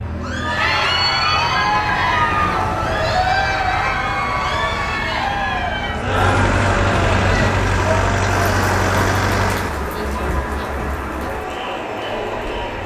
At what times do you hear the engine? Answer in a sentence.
The engine can be heard from 6.0 to 9.8 s.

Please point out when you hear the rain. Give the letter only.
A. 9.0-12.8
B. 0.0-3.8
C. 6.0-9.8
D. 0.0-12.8
D.